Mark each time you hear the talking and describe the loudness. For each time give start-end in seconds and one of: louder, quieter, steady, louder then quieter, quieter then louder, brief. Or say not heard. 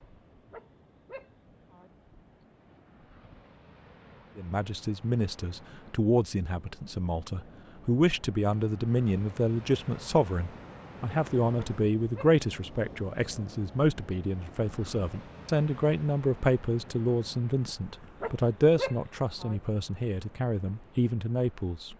4.3-21.9 steady.